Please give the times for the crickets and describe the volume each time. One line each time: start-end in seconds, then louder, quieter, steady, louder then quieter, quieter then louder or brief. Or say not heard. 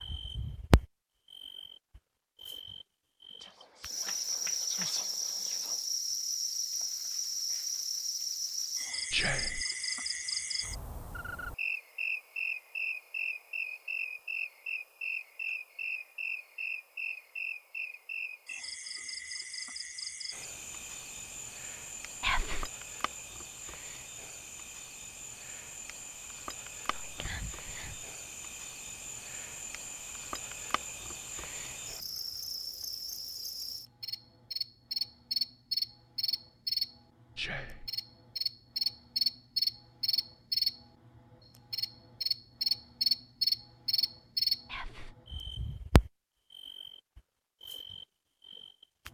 0.0-49.0 quieter then louder.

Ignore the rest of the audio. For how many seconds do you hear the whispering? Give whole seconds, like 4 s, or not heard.
6 s.